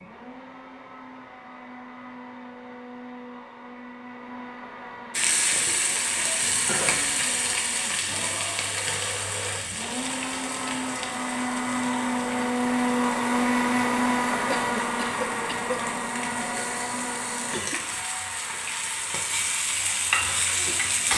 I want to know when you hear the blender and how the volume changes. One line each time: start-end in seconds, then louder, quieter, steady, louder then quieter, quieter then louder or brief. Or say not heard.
0.0-21.1 louder then quieter.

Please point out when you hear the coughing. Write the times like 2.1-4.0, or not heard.
14.5-15.8.